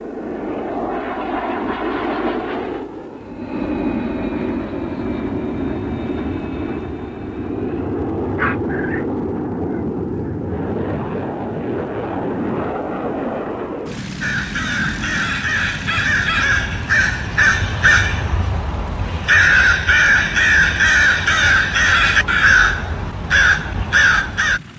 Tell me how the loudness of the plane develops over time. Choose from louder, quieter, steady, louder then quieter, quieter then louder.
quieter.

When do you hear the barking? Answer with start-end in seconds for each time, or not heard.
8.3-10.3.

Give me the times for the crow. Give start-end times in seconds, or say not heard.
14.2-24.6.